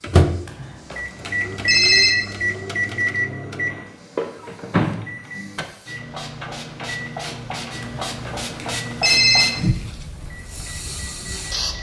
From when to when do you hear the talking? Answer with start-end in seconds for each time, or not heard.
not heard.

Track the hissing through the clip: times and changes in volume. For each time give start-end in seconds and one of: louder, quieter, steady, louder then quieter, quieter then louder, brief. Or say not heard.
0.0-11.7 louder.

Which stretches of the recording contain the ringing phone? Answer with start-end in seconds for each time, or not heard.
0.5-2.1, 7.8-9.4.